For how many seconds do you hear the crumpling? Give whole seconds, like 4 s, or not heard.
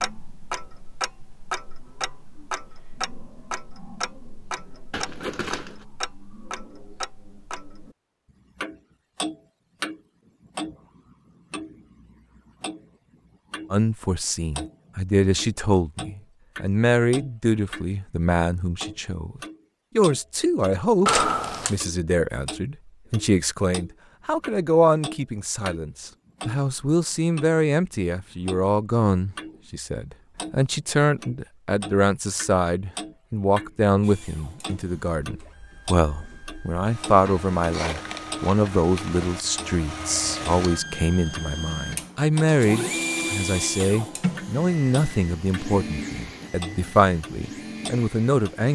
4 s.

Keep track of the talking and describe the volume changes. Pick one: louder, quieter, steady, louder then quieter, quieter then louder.
steady.